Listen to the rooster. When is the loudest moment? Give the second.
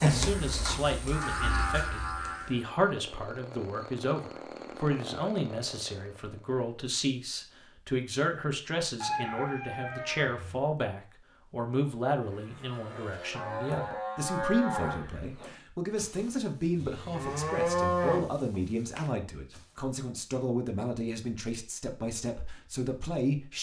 9 s.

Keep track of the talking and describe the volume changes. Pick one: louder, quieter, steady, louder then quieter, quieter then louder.
steady.